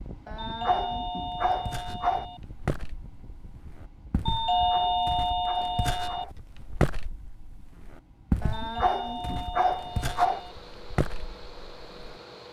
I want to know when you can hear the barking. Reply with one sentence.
You can hear the barking from 0.2 to 2.2 s, from 4.3 to 6.3 s and from 8.4 to 10.4 s.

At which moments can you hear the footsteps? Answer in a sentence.
You can hear the footsteps from 1.2 to 12.2 s.